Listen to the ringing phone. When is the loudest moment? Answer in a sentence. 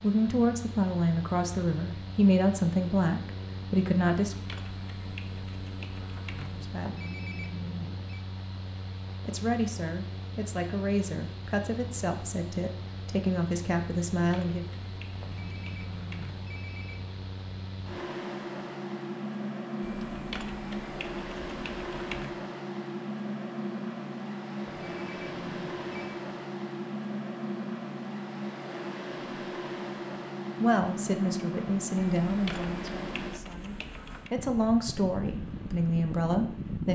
The volume of the ringing phone peaks at 8 seconds.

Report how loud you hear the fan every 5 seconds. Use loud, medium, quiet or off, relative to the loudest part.
medium, medium, medium, loud, loud, loud, loud, loud.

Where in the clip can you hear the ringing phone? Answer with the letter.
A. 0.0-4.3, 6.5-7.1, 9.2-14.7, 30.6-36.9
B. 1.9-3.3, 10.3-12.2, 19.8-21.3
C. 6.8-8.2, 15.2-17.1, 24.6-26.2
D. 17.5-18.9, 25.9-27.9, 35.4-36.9
C.